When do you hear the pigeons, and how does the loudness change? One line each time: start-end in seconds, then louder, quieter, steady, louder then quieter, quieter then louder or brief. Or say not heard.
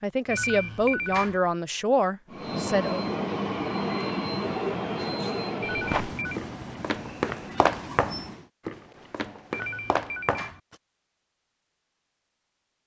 not heard.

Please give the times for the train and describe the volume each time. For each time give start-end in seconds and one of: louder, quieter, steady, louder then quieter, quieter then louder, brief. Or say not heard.
2.2-8.5 quieter.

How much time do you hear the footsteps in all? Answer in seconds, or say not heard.
5 s.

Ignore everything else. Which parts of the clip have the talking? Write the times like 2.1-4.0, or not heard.
0.0-3.0.